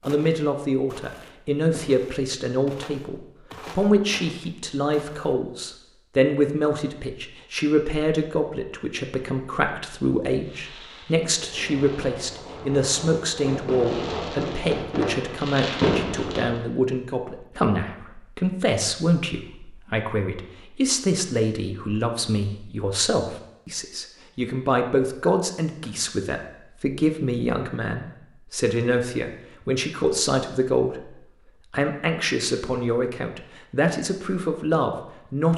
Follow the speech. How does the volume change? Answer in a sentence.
The loudness of the speech stays about the same.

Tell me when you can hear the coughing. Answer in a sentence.
You can't hear the coughing here.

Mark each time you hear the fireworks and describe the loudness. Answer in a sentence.
The fireworks can be heard from 10.4 to 16.6 s, getting louder.